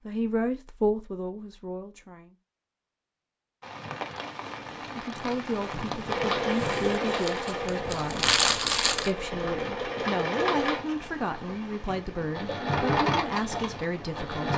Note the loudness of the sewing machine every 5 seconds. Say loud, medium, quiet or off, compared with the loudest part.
off, loud, loud.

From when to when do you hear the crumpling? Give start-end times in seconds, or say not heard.
6.5-9.1.